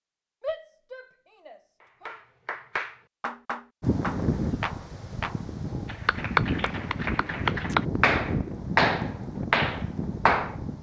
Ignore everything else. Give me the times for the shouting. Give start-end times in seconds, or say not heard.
0.4-2.2.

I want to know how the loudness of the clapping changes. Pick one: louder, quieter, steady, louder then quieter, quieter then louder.
louder.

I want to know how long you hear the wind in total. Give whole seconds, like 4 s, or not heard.
7 s.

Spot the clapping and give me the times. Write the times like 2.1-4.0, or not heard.
2.0-10.6.